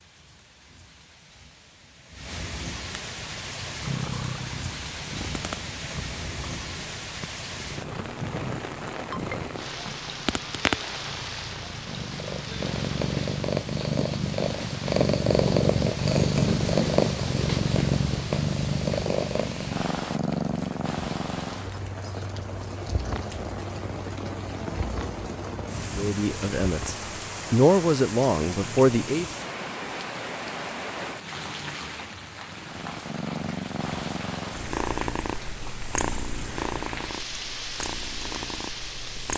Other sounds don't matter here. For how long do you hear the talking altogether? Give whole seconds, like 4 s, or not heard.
3 s.